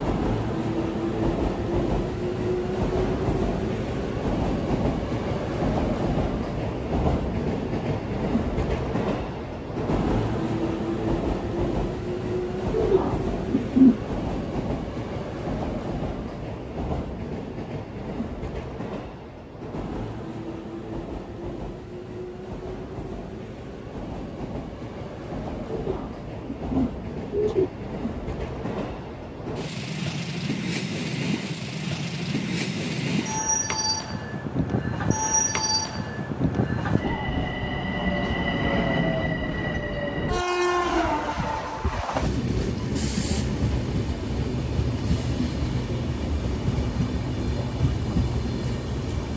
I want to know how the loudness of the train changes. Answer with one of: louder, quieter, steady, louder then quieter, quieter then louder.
quieter then louder.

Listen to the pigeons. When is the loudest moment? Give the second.
14 s.